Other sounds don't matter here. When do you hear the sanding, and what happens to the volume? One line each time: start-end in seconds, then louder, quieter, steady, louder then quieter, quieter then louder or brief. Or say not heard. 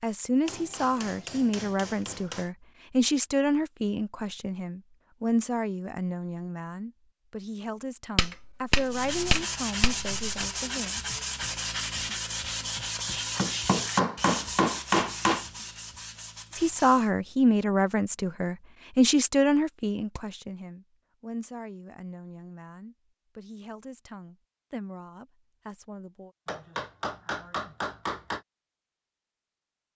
8.8-17.1 quieter.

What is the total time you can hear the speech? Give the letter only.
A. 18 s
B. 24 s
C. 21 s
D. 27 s
C.